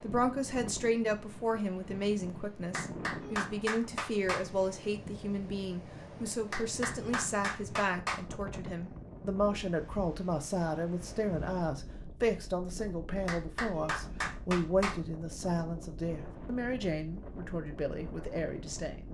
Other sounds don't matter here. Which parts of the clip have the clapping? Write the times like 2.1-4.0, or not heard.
2.7-4.5, 6.5-8.2, 13.2-14.9.